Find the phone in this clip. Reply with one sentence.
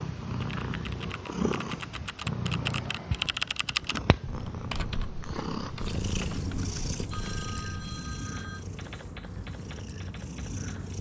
You can hear the phone from 7.1 to 8.7 s.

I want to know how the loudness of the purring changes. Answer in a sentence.
The volume of the purring goes down.